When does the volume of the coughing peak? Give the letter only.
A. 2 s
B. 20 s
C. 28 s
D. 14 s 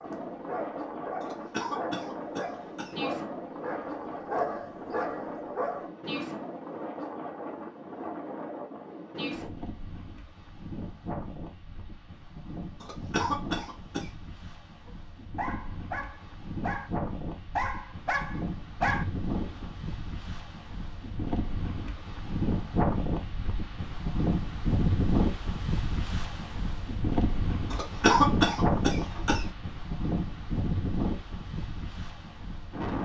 C.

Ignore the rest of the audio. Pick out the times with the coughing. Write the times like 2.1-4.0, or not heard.
1.2-3.0, 12.8-14.1, 27.7-29.4.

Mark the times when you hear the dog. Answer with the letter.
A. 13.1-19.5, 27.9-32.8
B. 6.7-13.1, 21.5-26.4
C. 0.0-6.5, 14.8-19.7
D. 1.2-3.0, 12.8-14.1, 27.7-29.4
C.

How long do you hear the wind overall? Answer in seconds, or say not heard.
33 s.